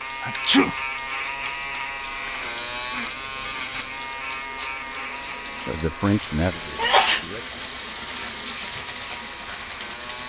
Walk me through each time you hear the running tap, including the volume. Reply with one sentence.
You can hear the running tap from 0.0 to 10.2 s, getting louder.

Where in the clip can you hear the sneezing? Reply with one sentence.
The sneezing can be heard from 0.2 to 0.8 s and from 6.4 to 7.2 s.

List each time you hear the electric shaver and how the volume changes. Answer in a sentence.
The electric shaver can be heard from 0.0 to 10.2 s, getting quieter.